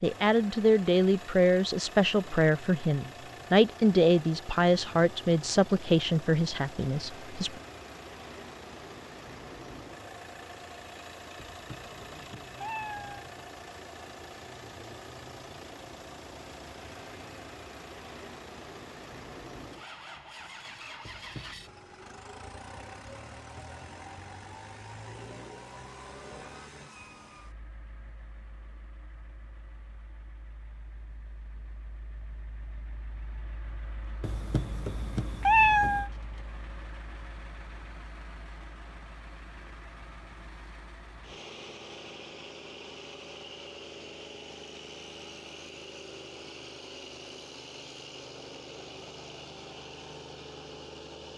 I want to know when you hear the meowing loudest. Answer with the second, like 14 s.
36 s.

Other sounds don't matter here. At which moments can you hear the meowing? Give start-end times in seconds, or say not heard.
11.3-13.2, 21.1-21.7, 34.2-36.1.